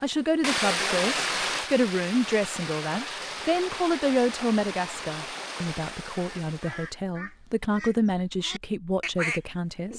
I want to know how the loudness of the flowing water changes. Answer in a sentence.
The volume of the flowing water goes down.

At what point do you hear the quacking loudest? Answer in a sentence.
The volume of the quacking peaks at 9 seconds.